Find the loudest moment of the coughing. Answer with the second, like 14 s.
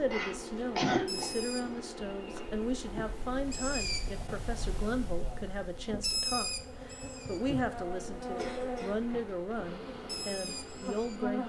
1 s.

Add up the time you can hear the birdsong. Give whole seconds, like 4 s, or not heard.
11 s.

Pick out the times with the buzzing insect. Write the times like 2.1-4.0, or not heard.
0.0-11.4.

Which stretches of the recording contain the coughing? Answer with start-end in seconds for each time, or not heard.
0.1-1.3, 8.2-8.9.